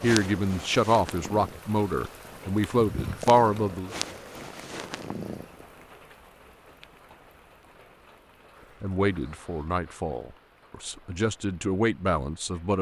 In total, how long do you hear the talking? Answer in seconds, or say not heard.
8 s.